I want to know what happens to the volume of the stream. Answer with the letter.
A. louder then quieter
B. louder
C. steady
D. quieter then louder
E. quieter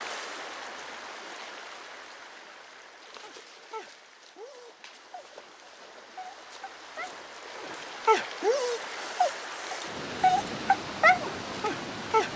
D.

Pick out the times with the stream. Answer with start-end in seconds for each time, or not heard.
0.0-12.3.